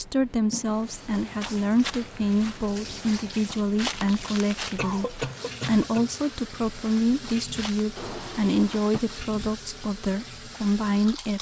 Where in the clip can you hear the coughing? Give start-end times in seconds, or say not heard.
4.8-6.2.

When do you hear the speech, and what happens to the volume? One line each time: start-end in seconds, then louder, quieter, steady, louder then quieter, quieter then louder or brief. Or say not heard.
0.0-11.3 steady.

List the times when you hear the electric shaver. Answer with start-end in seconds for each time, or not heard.
not heard.